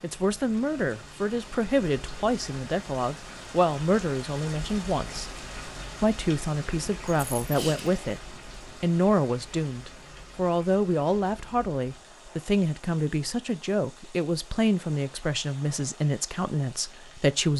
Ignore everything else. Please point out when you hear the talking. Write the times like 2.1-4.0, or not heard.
0.0-5.3, 6.0-8.2, 8.8-17.5.